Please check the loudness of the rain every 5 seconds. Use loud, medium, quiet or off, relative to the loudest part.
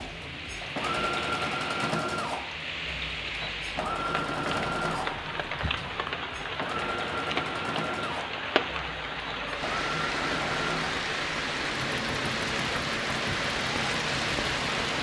medium, loud, loud.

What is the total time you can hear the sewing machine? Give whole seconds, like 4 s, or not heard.
15 s.